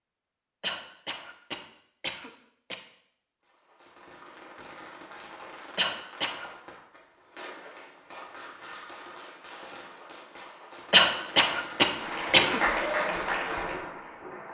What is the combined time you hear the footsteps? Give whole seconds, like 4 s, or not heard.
not heard.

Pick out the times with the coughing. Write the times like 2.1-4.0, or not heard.
0.6-2.8, 5.8-6.5, 10.9-12.6.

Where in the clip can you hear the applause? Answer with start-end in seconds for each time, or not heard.
11.9-14.4.